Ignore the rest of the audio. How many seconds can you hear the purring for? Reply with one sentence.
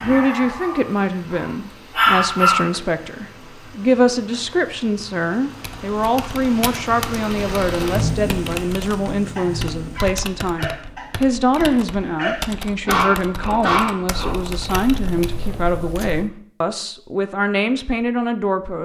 You can't hear the purring here.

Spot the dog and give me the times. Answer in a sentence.
The dog can be heard from 0.0 to 2.7 s and from 9.3 to 14.3 s.